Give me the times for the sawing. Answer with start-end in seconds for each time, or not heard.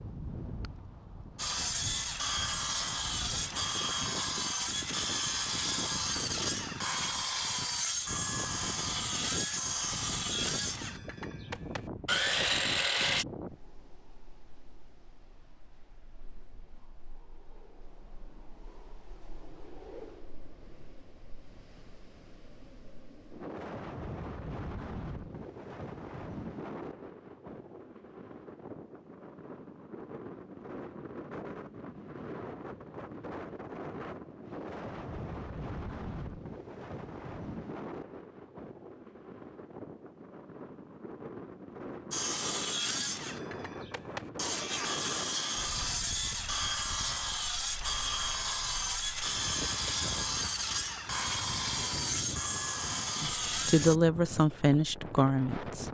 1.4-13.2, 42.1-54.0.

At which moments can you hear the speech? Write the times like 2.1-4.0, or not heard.
53.2-55.8.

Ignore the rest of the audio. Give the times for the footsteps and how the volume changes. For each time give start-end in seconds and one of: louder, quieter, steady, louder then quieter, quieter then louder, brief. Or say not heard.
not heard.